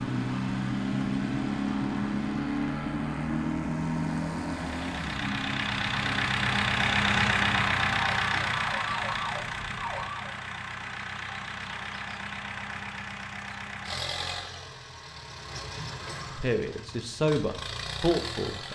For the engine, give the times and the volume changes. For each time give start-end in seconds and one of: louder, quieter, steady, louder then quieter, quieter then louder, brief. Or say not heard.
0.0-18.7 louder then quieter.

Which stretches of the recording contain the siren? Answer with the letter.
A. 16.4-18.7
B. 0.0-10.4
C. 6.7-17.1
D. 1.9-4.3
B.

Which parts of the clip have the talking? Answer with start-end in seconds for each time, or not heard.
16.4-18.7.